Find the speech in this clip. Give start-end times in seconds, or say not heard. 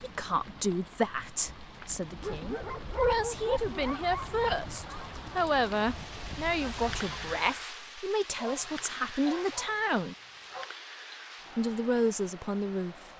0.0-10.2, 11.6-13.1.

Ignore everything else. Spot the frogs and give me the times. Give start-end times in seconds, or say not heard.
not heard.